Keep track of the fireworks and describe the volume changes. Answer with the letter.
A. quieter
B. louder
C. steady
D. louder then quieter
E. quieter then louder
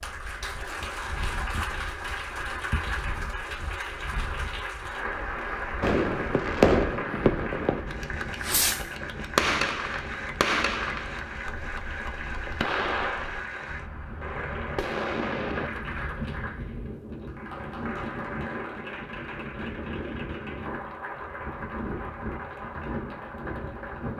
A.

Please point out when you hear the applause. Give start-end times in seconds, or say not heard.
0.0-24.1.